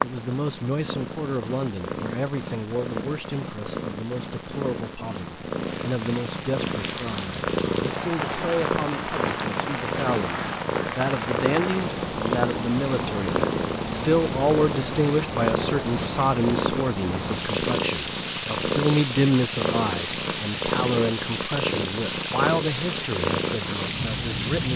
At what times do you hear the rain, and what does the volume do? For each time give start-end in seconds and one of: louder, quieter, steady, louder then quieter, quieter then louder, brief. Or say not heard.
6.5-24.7 steady.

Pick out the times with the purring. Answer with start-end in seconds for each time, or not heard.
0.0-24.7.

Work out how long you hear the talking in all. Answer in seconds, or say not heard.
25 s.